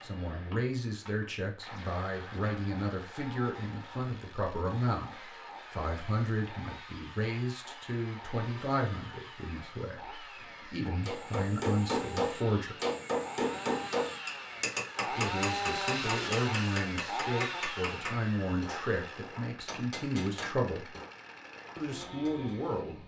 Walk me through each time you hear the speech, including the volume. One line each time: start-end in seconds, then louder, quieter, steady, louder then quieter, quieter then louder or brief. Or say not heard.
0.0-12.8 steady
15.1-20.9 steady
21.8-22.9 brief.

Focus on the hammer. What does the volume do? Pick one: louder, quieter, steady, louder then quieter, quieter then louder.
quieter.